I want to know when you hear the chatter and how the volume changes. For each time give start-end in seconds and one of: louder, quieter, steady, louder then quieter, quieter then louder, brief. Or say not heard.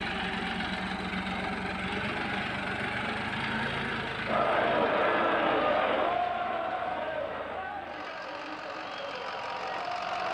4.2-10.2 quieter.